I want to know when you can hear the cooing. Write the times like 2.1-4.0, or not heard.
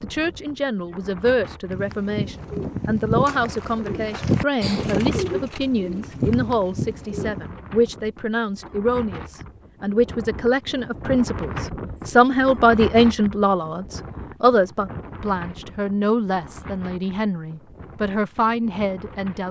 1.6-7.5.